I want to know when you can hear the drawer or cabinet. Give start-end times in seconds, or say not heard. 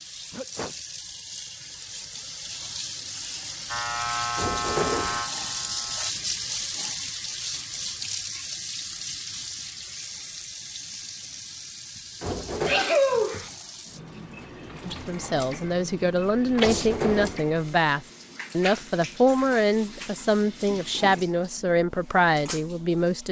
4.3-5.2, 12.2-12.8, 16.6-17.4.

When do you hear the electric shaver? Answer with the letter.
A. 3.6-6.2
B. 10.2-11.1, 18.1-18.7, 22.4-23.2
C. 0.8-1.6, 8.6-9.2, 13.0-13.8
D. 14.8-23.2
A.